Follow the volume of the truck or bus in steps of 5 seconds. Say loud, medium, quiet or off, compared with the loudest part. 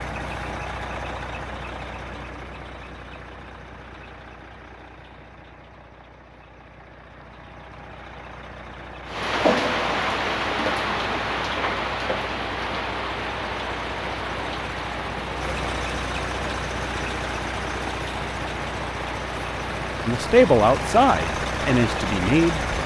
medium, quiet, medium, loud, loud.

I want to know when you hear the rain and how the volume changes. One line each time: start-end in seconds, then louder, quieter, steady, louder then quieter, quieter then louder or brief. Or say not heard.
9.1-22.8 quieter.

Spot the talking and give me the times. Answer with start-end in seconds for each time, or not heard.
20.1-22.6.